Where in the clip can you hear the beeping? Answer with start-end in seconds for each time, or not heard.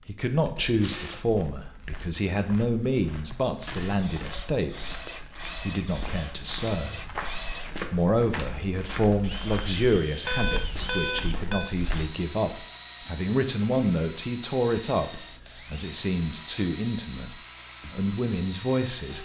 10.2-11.8.